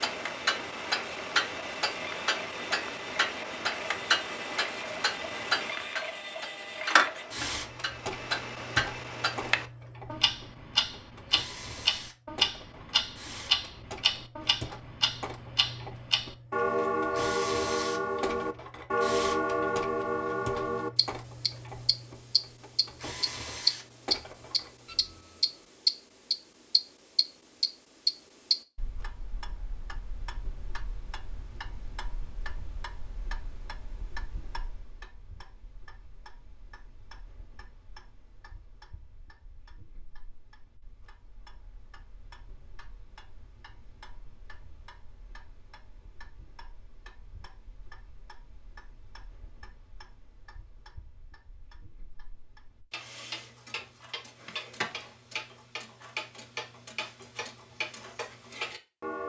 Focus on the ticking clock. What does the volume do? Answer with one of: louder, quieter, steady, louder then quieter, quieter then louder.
quieter then louder.